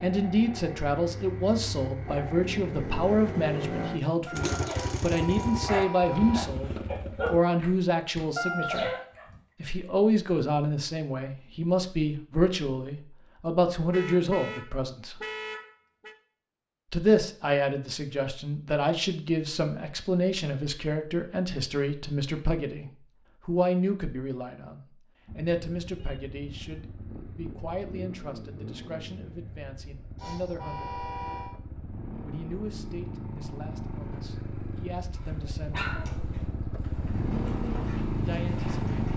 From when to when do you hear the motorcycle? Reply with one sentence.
The motorcycle can be heard from 0.0 to 7.4 s and from 25.2 to 39.1 s.